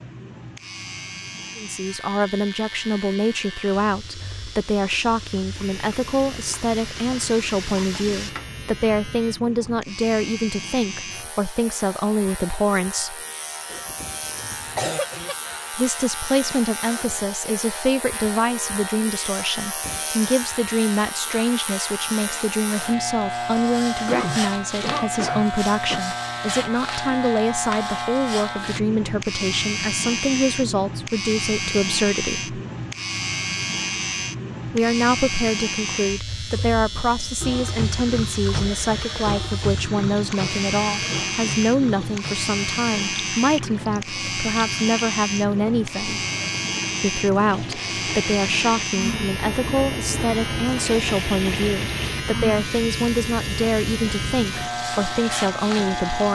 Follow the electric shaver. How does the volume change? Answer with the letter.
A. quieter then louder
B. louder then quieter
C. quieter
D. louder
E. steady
D.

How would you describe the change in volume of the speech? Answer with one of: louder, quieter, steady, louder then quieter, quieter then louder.
steady.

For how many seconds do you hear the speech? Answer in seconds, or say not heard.
49 s.